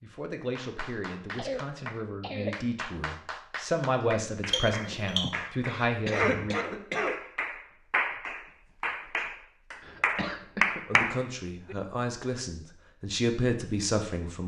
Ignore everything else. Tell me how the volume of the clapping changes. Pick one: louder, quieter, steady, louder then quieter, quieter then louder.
louder.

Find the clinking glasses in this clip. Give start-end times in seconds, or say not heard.
4.5-5.2.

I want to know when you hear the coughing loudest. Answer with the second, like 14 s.
6 s.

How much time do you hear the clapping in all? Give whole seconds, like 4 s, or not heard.
11 s.